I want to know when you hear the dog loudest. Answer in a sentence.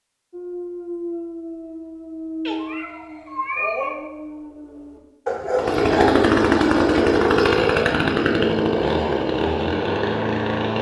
The volume of the dog peaks at 5 seconds.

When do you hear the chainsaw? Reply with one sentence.
You can hear the chainsaw from 5.5 to 10.7 s.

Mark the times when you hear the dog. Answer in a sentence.
You can hear the dog from 0.3 to 6.2 s.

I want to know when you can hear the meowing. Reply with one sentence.
You can hear the meowing from 2.5 to 4.0 s.